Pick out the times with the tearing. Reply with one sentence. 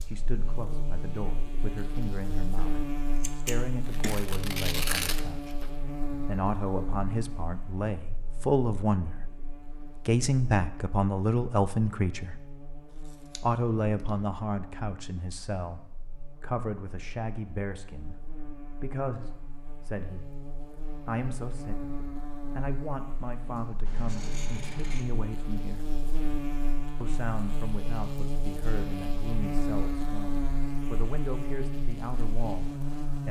The tearing can be heard from 3.9 to 5.7 s.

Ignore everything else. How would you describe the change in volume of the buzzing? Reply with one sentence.
The volume of the buzzing goes down, then up.